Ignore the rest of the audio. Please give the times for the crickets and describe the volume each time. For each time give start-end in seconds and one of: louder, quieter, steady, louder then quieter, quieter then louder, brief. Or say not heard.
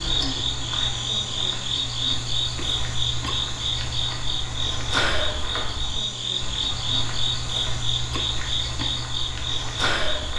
0.0-10.3 steady.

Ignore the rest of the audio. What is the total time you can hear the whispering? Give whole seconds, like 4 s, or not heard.
not heard.